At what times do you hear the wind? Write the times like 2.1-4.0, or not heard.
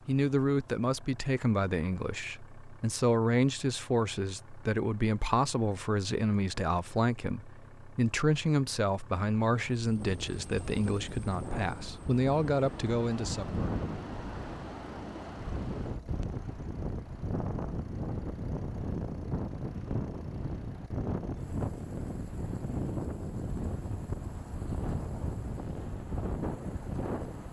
9.9-27.4.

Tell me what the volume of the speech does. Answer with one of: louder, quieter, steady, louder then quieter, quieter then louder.
steady.